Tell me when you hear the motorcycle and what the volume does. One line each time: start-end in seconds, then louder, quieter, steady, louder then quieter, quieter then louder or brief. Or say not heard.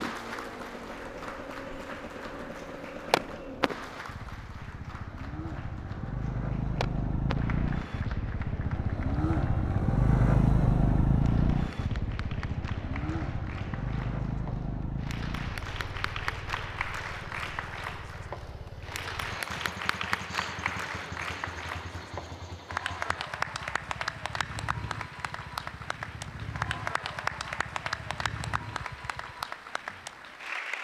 0.0-29.4 louder then quieter.